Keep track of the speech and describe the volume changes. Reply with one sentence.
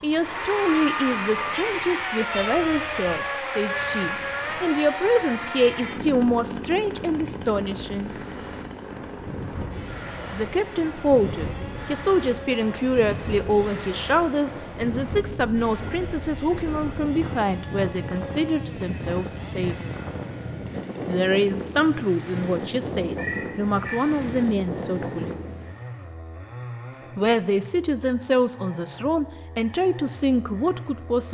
The volume of the speech stays about the same.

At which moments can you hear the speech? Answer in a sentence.
You can hear the speech from 0.0 to 8.1 s, from 10.3 to 19.8 s, from 21.1 to 25.4 s and from 27.1 to 31.3 s.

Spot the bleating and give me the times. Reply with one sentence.
The bleating can't be heard in this clip.